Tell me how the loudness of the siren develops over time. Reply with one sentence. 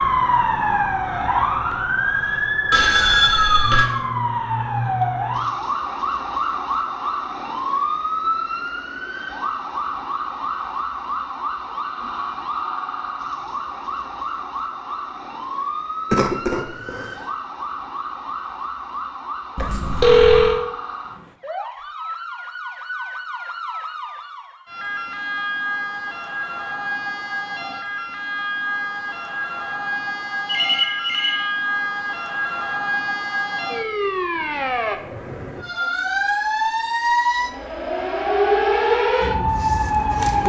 The volume of the siren goes down, then up.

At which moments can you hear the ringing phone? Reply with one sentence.
The ringing phone can be heard from 2.7 to 3.9 s, from 19.6 to 20.6 s and from 30.4 to 31.4 s.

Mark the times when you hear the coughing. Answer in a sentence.
You can hear the coughing from 16.1 to 17.2 s.